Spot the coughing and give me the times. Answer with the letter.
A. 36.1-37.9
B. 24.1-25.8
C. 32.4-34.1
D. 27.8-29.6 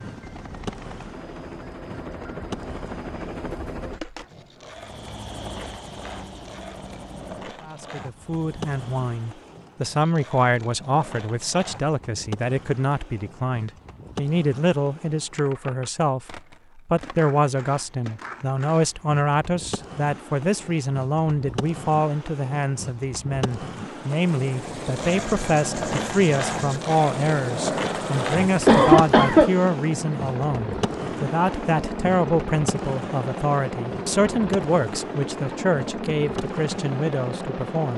D.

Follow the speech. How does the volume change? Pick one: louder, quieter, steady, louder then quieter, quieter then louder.
steady.